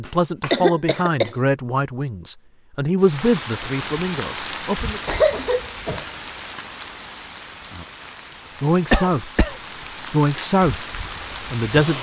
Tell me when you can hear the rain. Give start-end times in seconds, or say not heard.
3.0-11.9.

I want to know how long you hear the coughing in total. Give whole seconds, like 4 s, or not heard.
3 s.